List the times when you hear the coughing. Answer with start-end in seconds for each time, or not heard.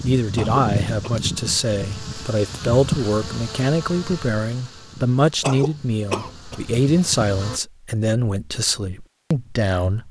0.3-1.1, 5.4-6.6.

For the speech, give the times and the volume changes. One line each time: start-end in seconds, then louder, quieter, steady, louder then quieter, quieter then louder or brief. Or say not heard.
0.0-10.0 steady.